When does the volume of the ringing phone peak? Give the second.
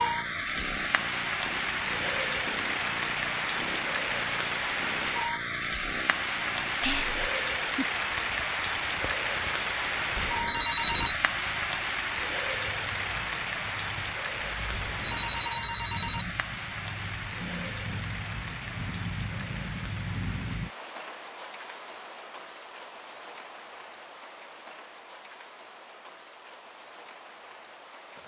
11 s.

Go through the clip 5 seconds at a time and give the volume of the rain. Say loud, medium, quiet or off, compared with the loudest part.
loud, loud, loud, medium, quiet, quiet.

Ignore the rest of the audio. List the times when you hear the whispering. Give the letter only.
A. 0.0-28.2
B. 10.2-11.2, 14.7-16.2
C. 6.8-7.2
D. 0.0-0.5
C.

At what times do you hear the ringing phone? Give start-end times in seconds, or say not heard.
10.2-11.2, 14.7-16.2.